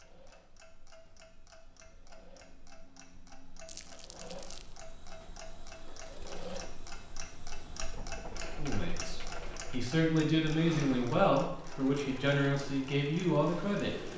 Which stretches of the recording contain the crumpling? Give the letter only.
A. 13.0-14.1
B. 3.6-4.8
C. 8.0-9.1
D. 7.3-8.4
B.